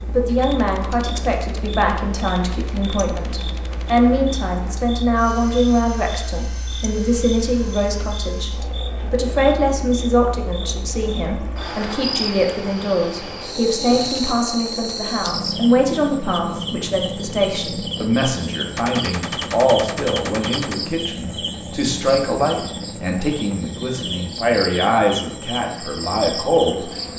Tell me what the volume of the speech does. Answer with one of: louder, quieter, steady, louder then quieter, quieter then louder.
steady.